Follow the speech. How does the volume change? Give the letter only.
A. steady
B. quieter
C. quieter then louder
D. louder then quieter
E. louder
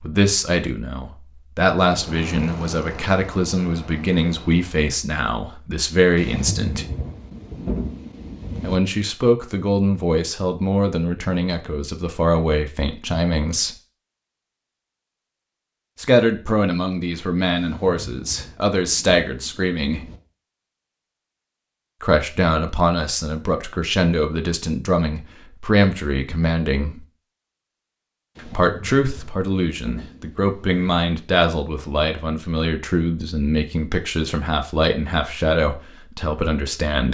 A.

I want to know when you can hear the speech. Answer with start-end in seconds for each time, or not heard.
0.0-6.8, 8.6-13.8, 15.9-20.0, 22.0-27.1, 28.4-37.0.